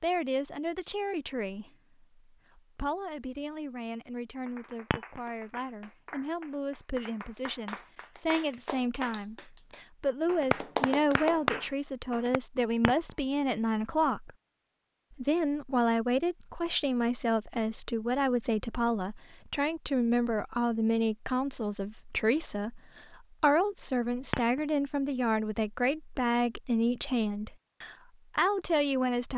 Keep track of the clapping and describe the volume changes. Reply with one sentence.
The loudness of the clapping goes up.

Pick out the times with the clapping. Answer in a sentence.
The clapping can be heard from 4.5 to 12.4 s.